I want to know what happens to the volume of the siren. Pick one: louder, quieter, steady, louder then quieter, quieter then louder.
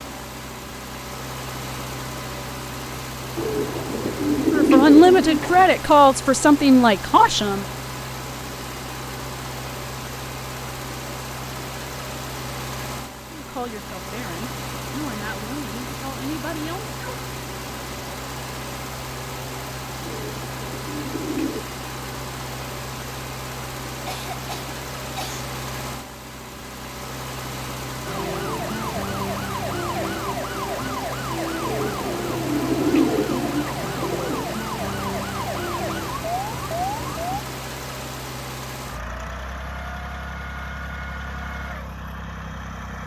steady.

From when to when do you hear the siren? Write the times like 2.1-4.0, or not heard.
28.1-37.4.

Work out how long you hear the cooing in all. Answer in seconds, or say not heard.
7 s.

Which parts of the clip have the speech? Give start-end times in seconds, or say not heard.
4.5-7.7, 13.3-16.9.